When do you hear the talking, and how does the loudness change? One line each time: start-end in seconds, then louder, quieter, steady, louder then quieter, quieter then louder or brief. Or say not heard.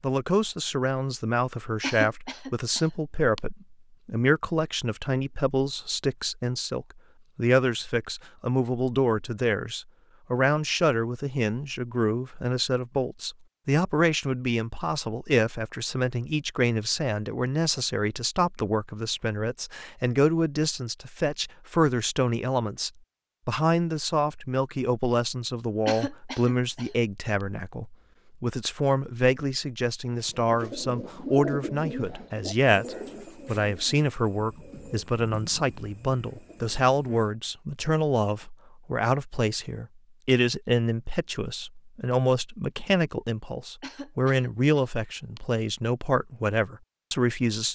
0.0-47.7 steady.